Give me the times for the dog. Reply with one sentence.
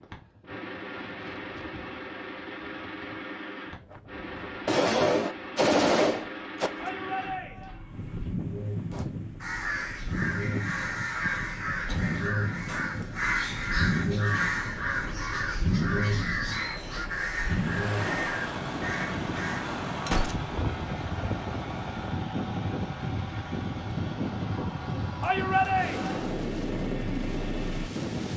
You can't hear the dog here.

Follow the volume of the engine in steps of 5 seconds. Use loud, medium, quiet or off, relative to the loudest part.
medium, medium, loud, loud, medium, medium.